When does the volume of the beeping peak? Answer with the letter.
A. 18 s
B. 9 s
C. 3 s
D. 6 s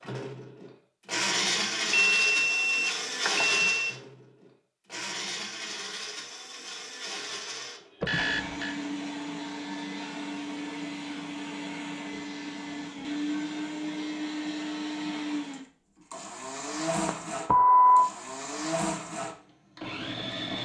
A.